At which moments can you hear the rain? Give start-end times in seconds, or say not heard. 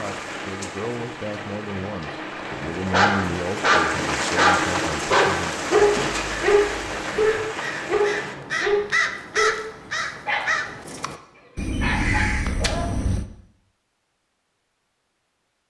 0.0-8.3.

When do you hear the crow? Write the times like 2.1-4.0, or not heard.
5.8-13.2.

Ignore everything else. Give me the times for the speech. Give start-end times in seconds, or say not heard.
0.0-5.7.